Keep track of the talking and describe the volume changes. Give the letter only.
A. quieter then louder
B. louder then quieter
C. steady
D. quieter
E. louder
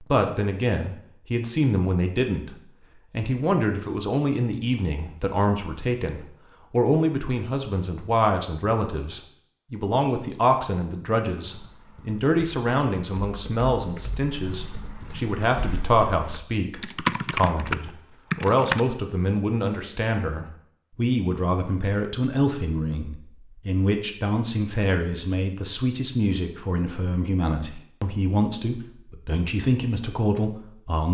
C.